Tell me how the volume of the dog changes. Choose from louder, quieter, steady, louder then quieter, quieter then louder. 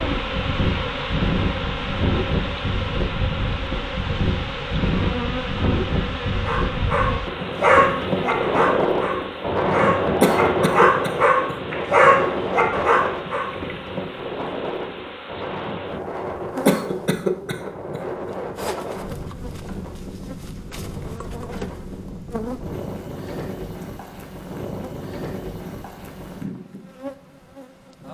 quieter then louder.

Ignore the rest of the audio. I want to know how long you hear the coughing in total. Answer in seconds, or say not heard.
3 s.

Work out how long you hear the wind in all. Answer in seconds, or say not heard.
28 s.